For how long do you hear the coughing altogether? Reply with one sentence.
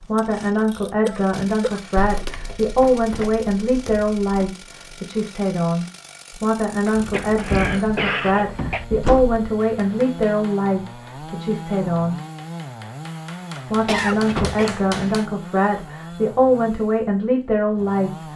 You can hear the coughing for 4 seconds altogether.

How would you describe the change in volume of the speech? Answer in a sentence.
The loudness of the speech stays about the same.